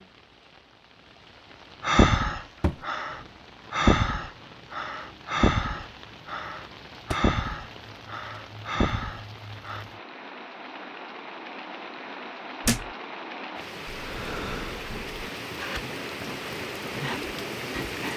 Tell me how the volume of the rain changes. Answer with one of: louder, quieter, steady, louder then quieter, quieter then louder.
louder.